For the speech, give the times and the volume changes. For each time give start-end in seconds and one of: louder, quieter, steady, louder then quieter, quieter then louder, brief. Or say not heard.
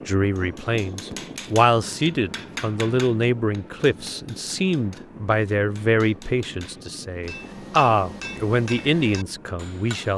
0.1-10.1 steady.